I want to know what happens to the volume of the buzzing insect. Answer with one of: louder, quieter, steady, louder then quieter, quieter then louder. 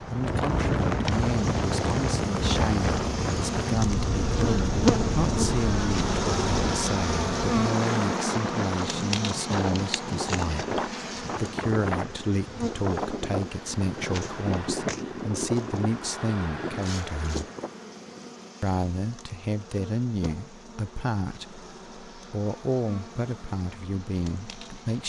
quieter.